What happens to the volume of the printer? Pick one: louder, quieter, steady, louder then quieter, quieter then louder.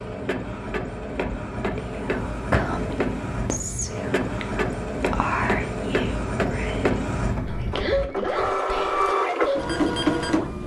louder.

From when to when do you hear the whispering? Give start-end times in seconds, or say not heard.
1.7-9.8.